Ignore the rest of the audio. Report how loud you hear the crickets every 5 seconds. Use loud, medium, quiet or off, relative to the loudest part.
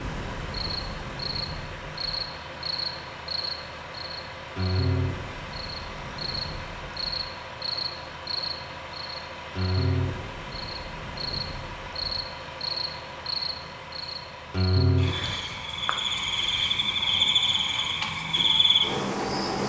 medium, medium, medium, loud.